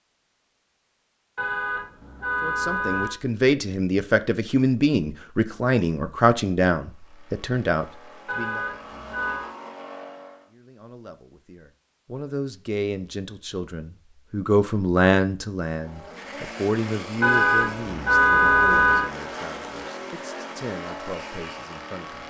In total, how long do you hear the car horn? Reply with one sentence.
You can hear the car horn for 5 seconds altogether.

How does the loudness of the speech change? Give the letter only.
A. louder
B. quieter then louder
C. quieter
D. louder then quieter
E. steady
C.